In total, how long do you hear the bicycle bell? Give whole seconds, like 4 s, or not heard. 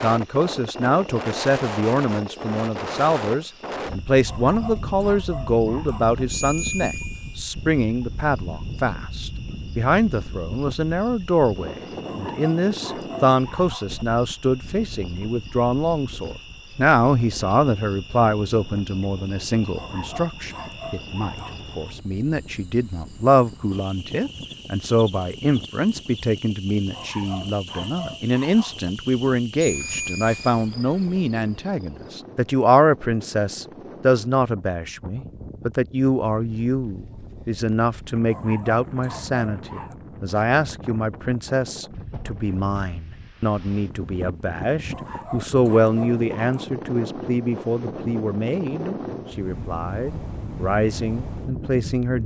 2 s.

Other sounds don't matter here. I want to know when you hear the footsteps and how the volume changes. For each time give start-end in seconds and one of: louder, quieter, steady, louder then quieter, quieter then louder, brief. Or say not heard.
not heard.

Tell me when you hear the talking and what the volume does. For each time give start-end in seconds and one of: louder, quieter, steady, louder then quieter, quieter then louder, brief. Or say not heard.
0.0-52.2 steady.